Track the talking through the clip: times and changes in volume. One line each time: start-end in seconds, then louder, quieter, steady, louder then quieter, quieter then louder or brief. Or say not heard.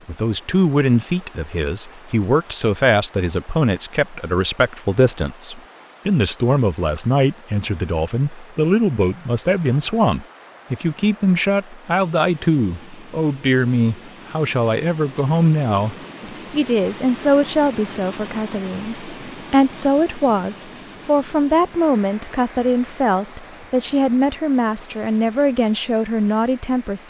0.1-27.0 steady.